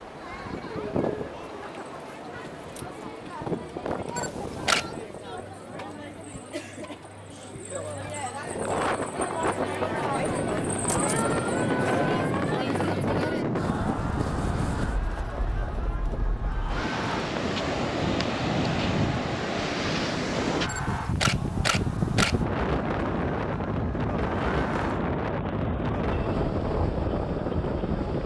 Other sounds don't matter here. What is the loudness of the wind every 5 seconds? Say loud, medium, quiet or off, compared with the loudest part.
medium, loud, loud, loud, loud, loud.